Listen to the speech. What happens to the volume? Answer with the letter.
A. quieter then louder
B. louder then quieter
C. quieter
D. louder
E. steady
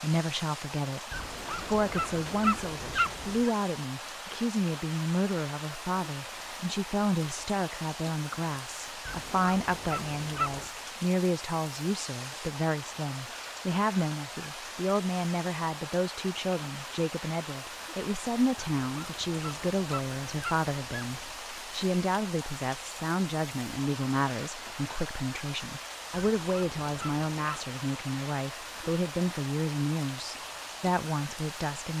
E.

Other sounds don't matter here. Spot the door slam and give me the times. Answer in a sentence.
You can't hear the door slam here.